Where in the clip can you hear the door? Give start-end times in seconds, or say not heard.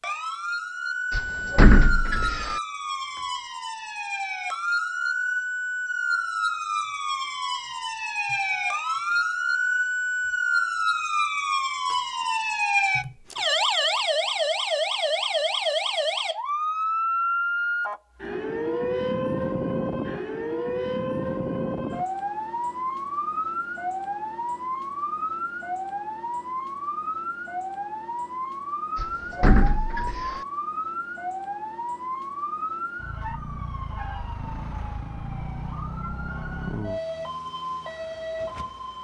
1.1-2.6, 28.9-30.4.